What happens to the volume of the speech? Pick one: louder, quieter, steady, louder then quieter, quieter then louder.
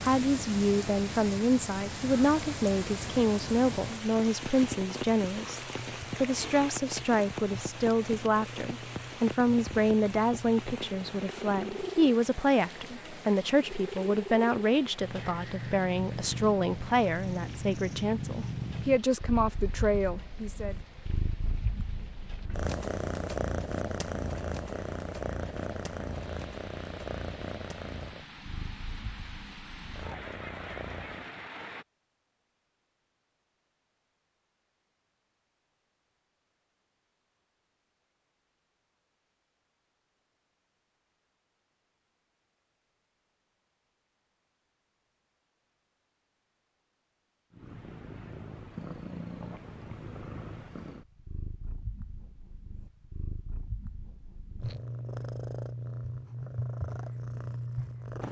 steady.